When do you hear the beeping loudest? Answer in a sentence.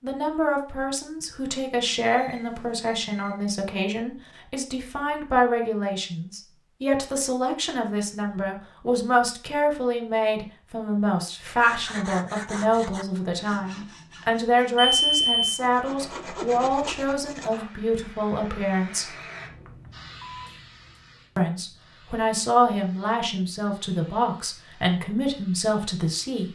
The loudest moment of the beeping is at 15 seconds.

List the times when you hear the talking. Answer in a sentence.
You can hear the talking from 0.0 to 19.2 s and from 21.4 to 26.5 s.